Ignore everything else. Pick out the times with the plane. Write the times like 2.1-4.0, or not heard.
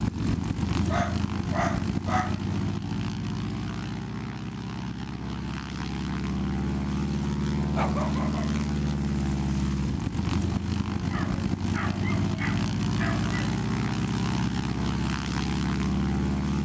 0.0-16.6.